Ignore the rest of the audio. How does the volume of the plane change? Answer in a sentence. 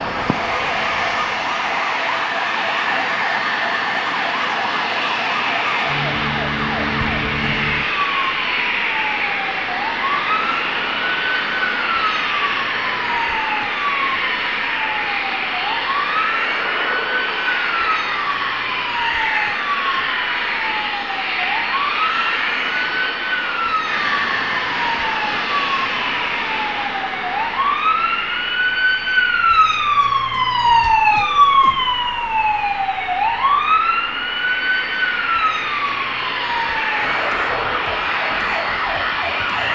The volume of the plane stays about the same.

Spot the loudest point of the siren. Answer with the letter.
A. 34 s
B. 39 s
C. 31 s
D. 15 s
C.